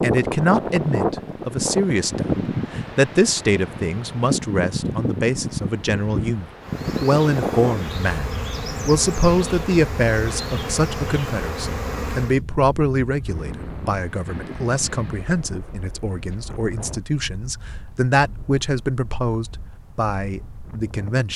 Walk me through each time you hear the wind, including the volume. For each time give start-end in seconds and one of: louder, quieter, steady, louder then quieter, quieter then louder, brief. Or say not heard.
0.0-21.3 quieter.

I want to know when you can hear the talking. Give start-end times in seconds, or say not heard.
0.0-21.3.